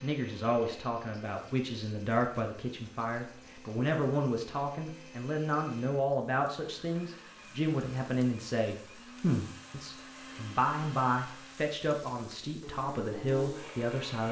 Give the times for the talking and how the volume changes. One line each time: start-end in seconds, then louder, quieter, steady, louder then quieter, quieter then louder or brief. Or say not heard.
0.0-14.2 steady.